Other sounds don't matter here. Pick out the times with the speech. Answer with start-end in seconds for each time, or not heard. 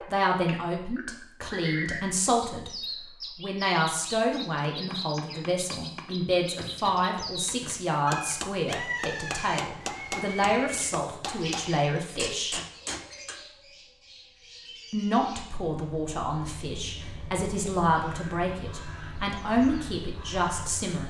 0.1-2.7, 3.4-12.6, 14.9-21.0.